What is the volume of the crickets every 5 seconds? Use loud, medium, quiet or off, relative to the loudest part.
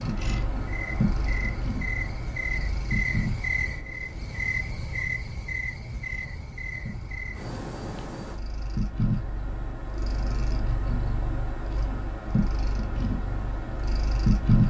loud, loud, off.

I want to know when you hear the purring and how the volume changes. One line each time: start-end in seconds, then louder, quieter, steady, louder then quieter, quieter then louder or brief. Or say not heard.
0.0-14.6 quieter then louder.